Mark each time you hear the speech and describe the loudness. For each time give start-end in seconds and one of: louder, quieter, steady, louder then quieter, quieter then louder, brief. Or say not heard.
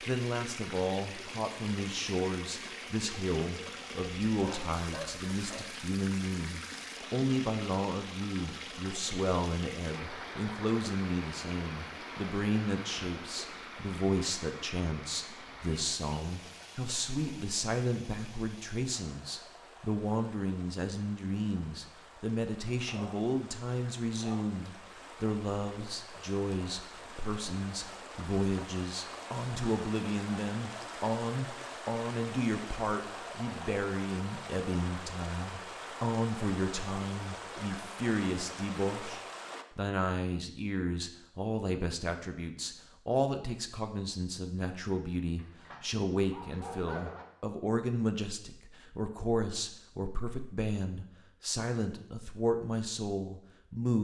0.1-53.9 steady.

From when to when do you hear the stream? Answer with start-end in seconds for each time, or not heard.
0.0-39.6.